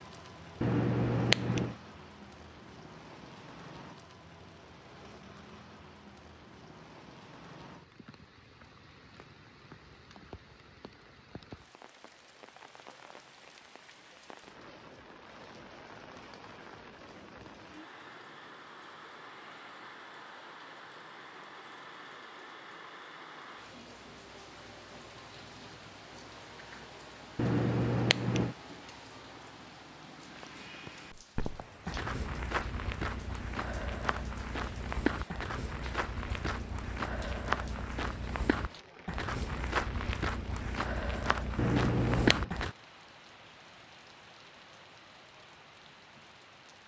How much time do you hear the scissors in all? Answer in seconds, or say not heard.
3 s.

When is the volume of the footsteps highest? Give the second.
42 s.